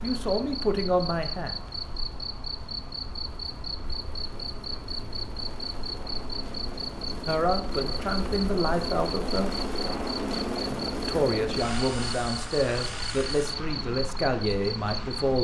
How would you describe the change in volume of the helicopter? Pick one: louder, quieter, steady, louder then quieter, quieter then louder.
louder then quieter.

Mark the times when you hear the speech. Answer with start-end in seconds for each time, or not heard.
0.0-1.6, 7.2-9.5, 11.1-15.3.